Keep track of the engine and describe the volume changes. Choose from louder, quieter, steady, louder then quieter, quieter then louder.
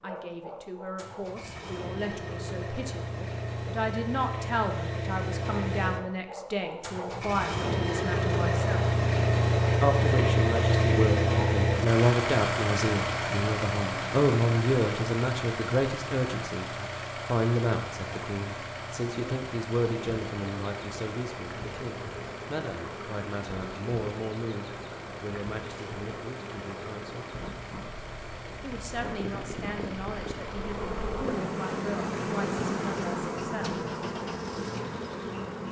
louder then quieter.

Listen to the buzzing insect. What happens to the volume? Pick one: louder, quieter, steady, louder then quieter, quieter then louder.
louder.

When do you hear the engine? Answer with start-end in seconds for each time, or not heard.
0.0-35.6.